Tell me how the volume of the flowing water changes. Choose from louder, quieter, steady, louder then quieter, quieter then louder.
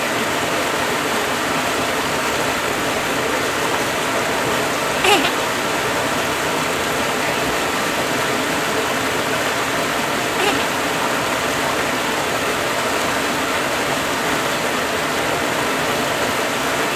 steady.